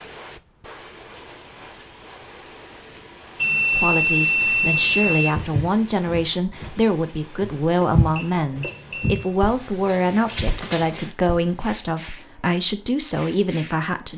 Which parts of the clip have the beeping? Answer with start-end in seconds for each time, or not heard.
3.4-5.3, 7.8-9.2.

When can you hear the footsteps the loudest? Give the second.
8 s.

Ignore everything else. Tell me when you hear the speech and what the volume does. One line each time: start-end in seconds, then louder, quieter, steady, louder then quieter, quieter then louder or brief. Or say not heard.
3.7-14.1 steady.